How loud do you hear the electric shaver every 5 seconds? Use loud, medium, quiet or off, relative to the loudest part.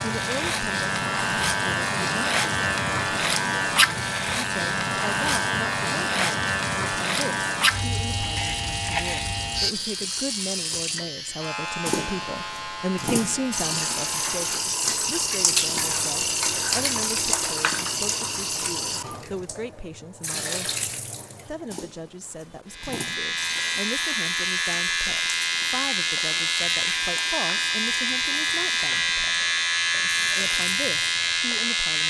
loud, loud, medium, off, loud, loud, loud.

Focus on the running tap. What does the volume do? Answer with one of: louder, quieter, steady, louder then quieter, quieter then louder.
louder then quieter.